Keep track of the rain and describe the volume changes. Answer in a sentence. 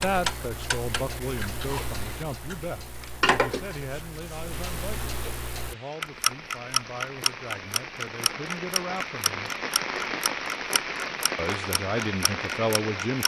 The loudness of the rain goes up.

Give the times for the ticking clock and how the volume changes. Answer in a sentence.
You can hear the ticking clock from 0.0 to 13.2 s, getting louder then quieter.